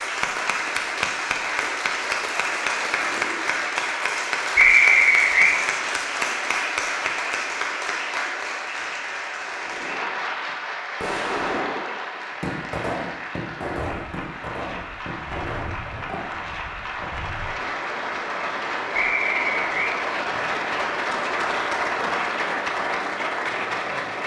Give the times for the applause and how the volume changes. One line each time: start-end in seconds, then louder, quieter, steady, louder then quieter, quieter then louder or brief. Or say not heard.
0.0-24.2 quieter then louder.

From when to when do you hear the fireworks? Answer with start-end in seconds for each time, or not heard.
9.4-17.4.